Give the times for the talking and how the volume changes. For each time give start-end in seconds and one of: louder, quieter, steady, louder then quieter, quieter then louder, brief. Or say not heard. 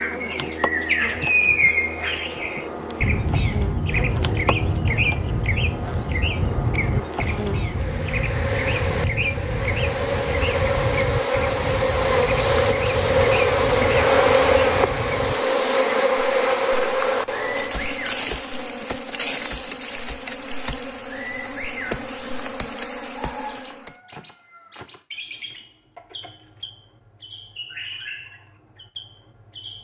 not heard.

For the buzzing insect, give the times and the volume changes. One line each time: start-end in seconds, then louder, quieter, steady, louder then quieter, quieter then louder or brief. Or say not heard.
0.0-24.0 louder then quieter.